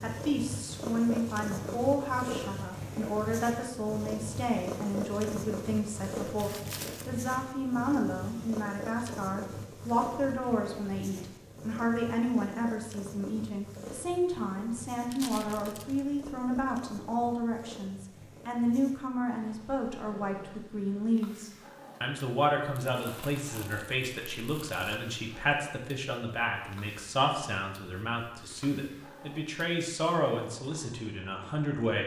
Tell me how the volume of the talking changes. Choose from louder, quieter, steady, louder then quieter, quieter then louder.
steady.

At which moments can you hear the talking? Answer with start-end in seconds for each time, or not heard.
0.0-32.0.